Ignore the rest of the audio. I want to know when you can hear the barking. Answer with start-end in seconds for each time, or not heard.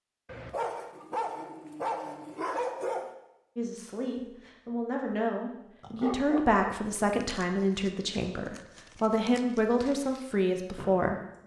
0.2-3.1, 5.8-6.8.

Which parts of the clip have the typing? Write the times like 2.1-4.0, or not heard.
not heard.